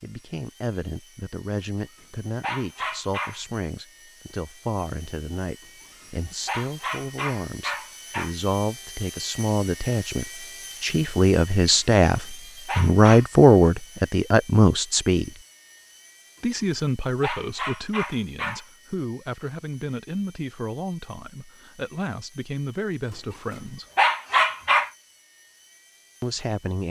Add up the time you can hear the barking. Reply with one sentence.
You can hear the barking for 6 seconds altogether.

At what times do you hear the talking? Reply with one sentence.
The talking can be heard from 0.0 to 15.3 s, from 16.4 to 23.9 s and from 26.2 to 26.8 s.